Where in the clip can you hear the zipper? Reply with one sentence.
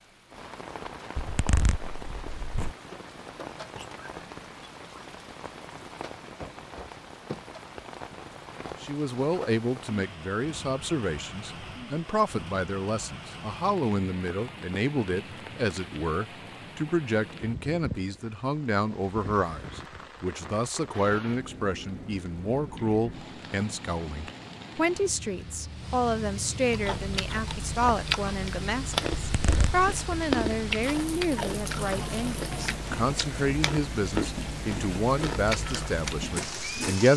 The zipper can be heard from 1.1 to 2.8 s and from 29.2 to 29.9 s.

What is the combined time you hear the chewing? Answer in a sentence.
The chewing can be heard for 10 seconds in total.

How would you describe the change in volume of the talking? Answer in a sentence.
The loudness of the talking stays about the same.